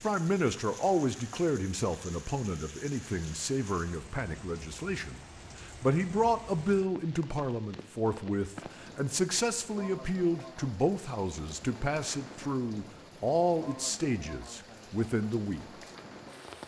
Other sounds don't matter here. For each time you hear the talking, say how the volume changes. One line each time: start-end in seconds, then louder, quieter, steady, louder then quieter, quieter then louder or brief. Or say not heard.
0.0-15.8 steady.